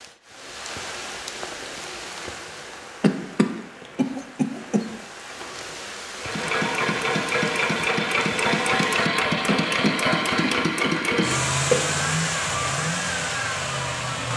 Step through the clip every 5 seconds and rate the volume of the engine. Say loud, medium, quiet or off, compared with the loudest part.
off, loud, loud.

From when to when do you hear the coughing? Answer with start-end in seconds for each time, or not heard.
3.0-4.8, 9.4-11.8.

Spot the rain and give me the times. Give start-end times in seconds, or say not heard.
0.0-9.1.